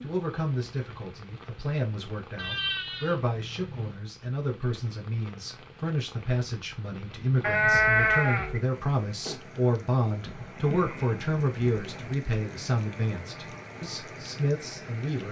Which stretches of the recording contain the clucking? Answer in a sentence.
The clucking can't be heard in this clip.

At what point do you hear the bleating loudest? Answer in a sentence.
The volume of the bleating peaks at 8 seconds.